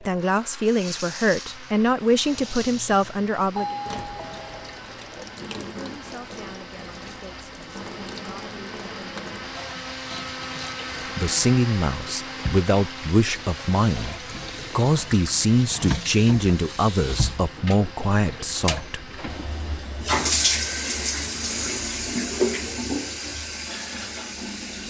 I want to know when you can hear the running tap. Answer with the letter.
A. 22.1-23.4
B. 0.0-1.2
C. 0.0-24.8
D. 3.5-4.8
C.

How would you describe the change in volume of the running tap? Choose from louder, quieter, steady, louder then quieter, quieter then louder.
louder.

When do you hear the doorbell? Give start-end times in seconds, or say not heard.
3.5-4.8.